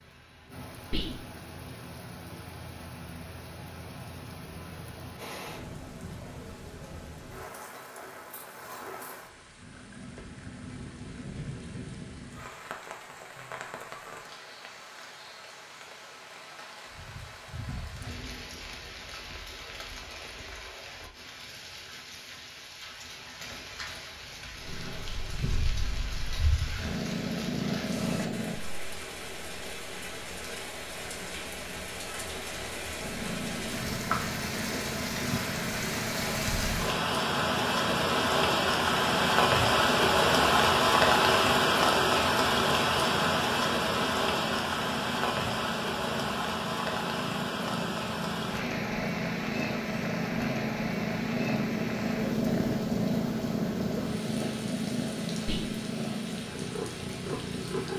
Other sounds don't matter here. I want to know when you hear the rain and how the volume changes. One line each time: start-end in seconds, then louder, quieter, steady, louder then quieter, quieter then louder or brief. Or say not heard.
0.0-57.9 louder then quieter.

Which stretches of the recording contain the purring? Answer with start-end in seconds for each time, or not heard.
24.6-28.6, 33.0-57.9.